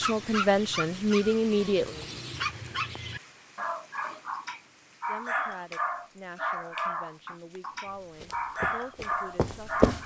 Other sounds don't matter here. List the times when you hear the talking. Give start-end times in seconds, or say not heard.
0.0-2.1, 5.0-9.8.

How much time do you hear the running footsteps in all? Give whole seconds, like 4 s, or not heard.
2 s.